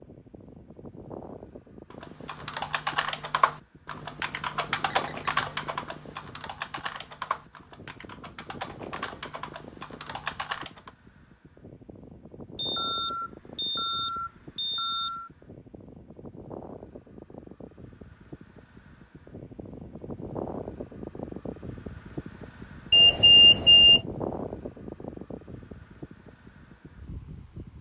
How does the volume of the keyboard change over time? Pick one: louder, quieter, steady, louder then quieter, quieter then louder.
quieter.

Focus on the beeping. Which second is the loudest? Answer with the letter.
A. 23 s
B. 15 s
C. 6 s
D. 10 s
A.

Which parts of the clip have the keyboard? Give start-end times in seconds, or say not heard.
1.9-10.9.